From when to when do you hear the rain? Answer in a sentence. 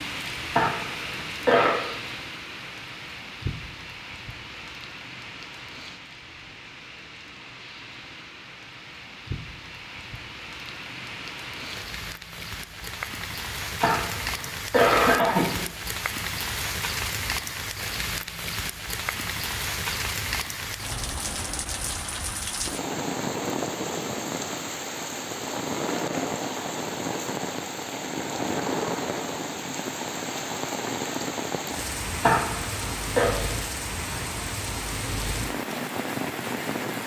The rain can be heard from 0.0 to 37.0 s.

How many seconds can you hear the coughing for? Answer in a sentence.
You can hear the coughing for 4 seconds altogether.